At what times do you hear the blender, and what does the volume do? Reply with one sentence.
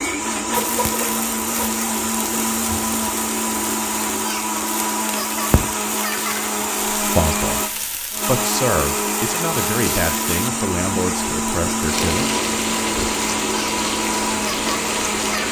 The blender can be heard from 0.0 to 15.4 s, at a steady volume.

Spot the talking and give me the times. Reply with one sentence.
You can hear the talking from 7.0 to 12.4 s.